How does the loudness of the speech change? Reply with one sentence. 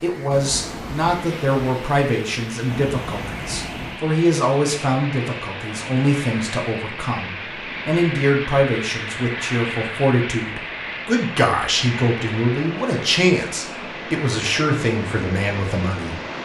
The volume of the speech stays about the same.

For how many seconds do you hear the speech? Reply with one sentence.
The speech can be heard for 16 seconds in total.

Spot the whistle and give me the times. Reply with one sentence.
The whistle can't be heard in this clip.